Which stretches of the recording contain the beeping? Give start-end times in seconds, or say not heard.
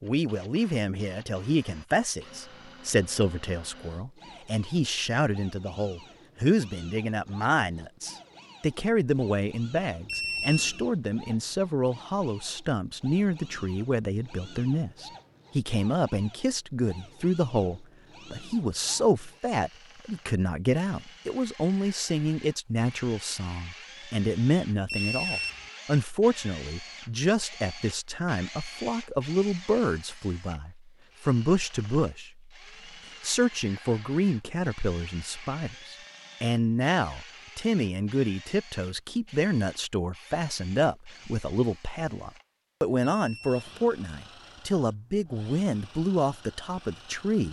10.1-10.8, 24.9-25.7, 43.0-43.6.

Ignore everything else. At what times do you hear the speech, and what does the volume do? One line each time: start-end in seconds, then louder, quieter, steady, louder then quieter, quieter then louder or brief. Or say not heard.
0.0-32.5 steady
33.2-47.4 steady.